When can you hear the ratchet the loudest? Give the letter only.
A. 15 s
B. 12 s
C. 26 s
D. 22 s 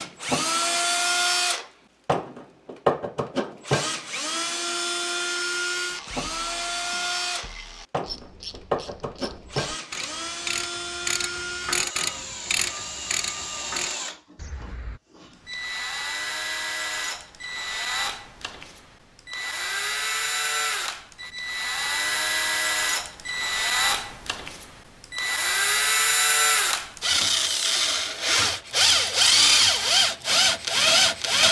B.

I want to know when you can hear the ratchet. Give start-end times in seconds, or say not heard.
5.9-15.0.